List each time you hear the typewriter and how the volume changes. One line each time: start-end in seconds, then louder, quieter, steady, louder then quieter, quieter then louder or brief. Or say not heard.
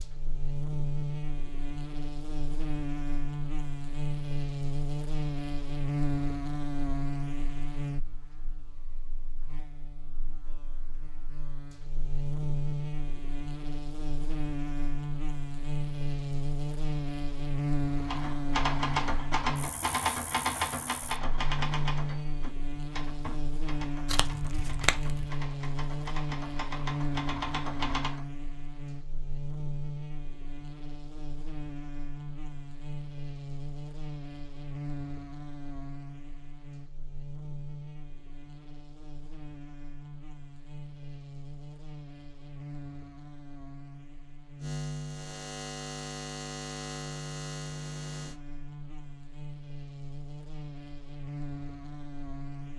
18.1-28.2 quieter then louder.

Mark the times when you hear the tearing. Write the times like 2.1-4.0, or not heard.
24.1-25.3.